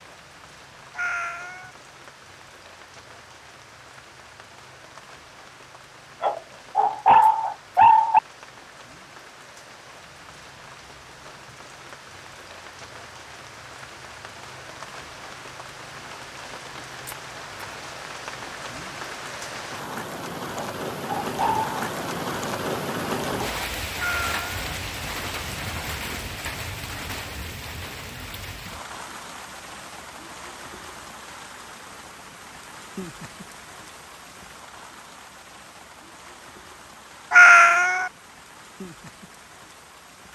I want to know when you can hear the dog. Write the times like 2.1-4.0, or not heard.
6.2-8.2, 20.6-21.8.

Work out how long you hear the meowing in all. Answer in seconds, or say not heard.
2 s.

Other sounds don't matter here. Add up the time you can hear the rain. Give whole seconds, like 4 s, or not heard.
40 s.